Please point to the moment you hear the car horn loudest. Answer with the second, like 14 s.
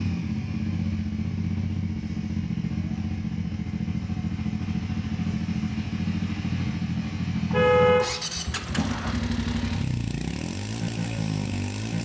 8 s.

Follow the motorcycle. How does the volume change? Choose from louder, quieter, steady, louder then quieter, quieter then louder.
steady.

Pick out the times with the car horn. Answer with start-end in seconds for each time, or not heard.
7.5-9.2.